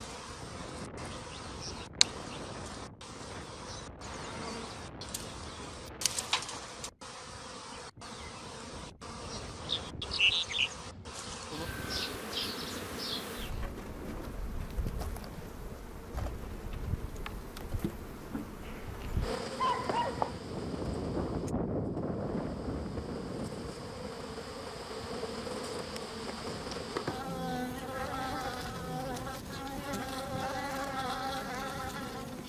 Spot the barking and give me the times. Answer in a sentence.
The barking can be heard from 19.0 to 20.4 s.